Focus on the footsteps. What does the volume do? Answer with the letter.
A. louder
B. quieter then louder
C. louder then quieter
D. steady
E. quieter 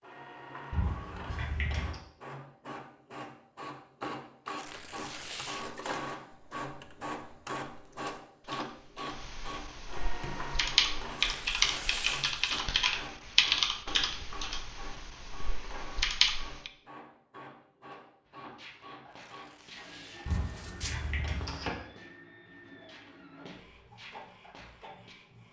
C.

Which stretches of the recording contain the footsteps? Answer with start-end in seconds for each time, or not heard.
18.2-25.1.